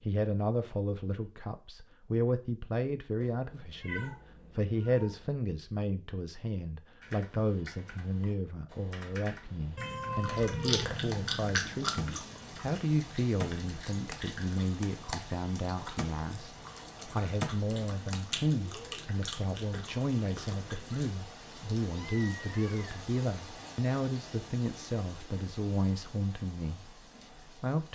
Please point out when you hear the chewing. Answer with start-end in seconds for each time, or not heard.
10.2-21.1.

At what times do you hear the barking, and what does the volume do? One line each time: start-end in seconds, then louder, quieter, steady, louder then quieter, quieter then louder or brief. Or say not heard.
not heard.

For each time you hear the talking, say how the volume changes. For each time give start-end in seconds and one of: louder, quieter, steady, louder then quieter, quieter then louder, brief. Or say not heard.
0.0-27.9 steady.